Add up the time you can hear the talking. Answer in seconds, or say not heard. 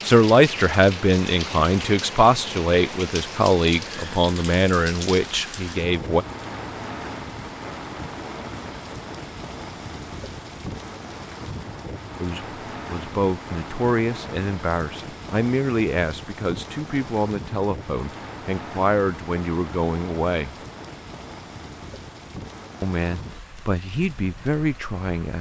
17 s.